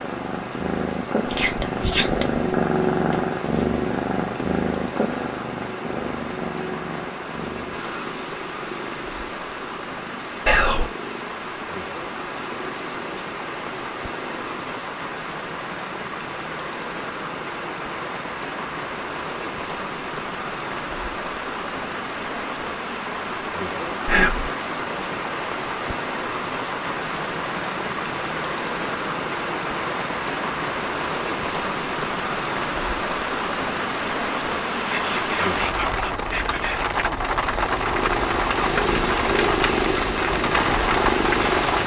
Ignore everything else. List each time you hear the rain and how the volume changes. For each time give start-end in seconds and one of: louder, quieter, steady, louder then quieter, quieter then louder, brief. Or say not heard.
0.0-41.8 louder.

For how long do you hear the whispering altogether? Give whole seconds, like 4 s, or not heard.
4 s.